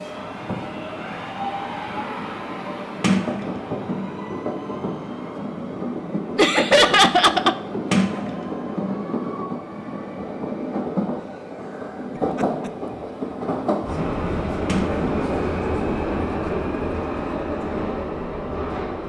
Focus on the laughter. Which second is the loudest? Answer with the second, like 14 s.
7 s.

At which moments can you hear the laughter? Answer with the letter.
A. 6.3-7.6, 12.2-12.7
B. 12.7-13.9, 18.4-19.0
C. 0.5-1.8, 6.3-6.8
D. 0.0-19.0
A.